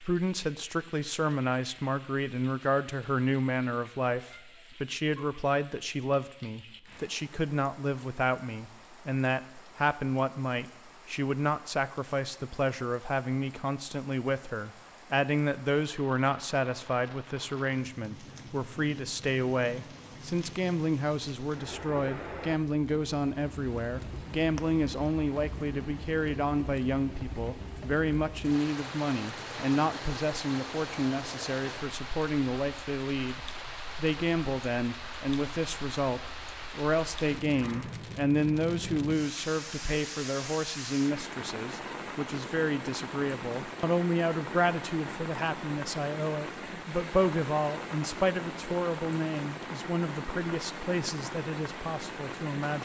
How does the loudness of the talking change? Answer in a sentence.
The volume of the talking stays about the same.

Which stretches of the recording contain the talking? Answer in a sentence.
You can hear the talking from 0.0 to 52.7 s.